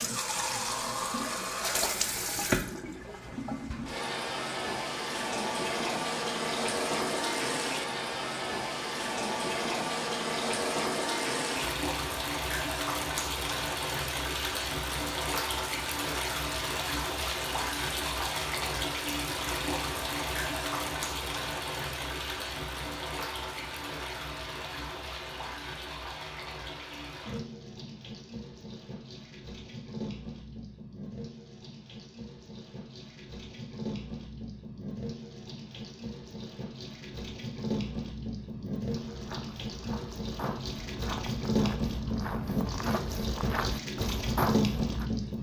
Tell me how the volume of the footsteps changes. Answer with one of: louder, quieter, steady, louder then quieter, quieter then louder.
louder.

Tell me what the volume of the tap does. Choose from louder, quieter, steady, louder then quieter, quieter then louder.
quieter then louder.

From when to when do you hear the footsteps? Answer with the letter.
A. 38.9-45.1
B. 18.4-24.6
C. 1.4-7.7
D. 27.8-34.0
A.